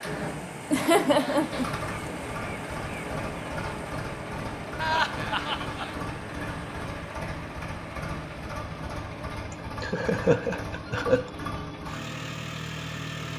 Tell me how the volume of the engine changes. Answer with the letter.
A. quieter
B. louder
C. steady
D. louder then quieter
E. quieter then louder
C.